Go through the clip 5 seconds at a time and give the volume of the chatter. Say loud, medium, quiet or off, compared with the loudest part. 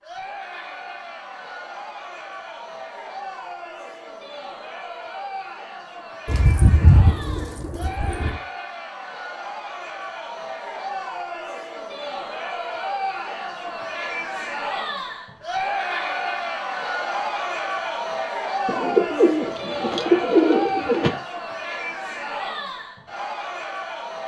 medium, medium, loud, loud, loud.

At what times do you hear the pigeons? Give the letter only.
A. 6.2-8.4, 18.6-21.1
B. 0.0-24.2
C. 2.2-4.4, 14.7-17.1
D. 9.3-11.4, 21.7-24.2
A.